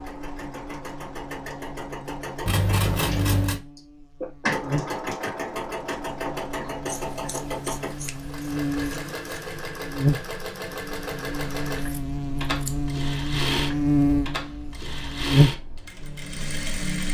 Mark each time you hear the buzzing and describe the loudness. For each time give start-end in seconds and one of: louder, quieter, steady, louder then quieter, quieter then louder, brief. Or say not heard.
0.0-17.0 louder.